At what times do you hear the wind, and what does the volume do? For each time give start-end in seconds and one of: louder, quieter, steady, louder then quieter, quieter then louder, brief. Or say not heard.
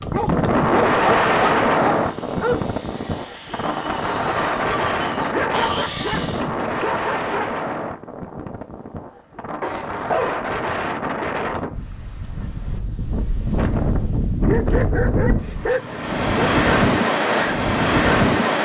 0.0-18.5 quieter then louder.